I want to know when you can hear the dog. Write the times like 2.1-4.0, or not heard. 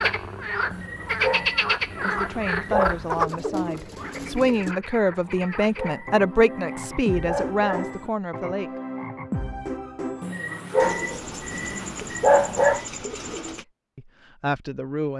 0.7-3.0, 5.2-8.1, 10.2-12.8.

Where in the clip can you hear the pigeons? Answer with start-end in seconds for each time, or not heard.
3.1-4.8, 10.8-13.7.